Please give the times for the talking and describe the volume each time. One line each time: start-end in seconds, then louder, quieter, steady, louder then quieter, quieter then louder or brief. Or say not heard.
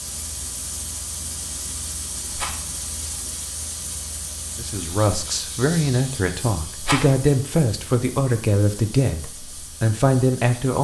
4.5-10.7 steady.